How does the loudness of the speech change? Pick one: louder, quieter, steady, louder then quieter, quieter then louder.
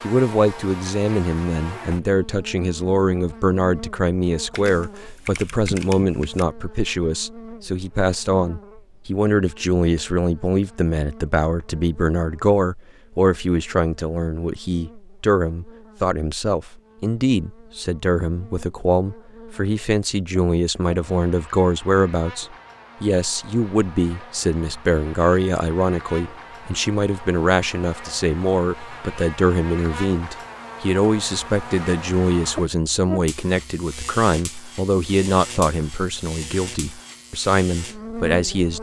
steady.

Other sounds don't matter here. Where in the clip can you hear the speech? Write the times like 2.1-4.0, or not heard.
0.0-38.7.